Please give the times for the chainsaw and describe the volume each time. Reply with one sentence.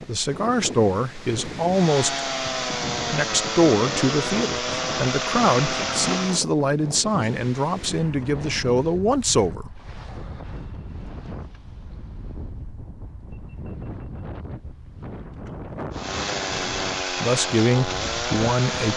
You can hear the chainsaw from 1.7 to 6.5 s, at a steady volume; and briefly from 15.9 to 18.9 s.